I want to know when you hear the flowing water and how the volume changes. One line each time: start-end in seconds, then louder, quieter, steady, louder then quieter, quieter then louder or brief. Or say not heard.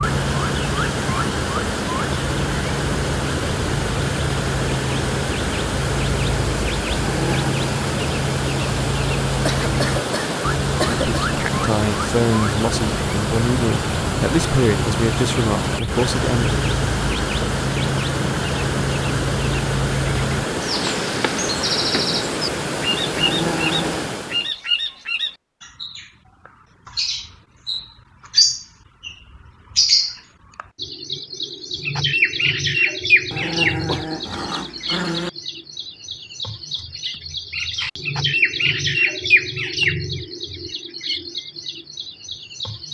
0.0-24.6 steady.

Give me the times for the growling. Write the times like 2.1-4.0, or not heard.
7.0-7.7, 23.1-24.1, 33.3-35.3.